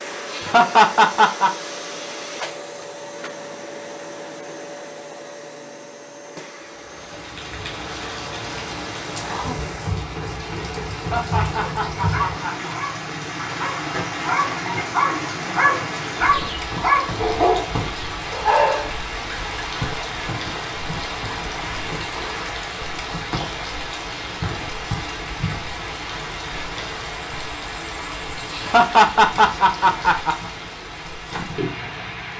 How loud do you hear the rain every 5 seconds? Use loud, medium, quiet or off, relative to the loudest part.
off, loud, loud, loud, loud, loud, loud.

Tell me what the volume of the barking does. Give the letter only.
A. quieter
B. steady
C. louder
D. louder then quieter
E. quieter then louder
C.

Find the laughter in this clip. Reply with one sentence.
The laughter can be heard from 0.3 to 1.5 s, from 10.9 to 12.7 s and from 28.5 to 30.4 s.